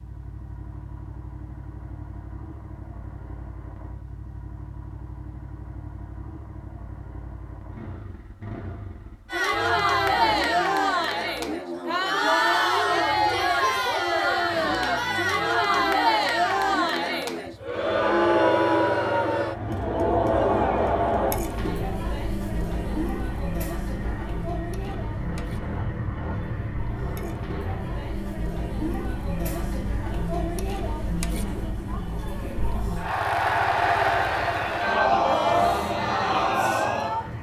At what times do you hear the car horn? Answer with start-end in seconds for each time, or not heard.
not heard.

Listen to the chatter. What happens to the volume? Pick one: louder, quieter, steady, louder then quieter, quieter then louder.
quieter then louder.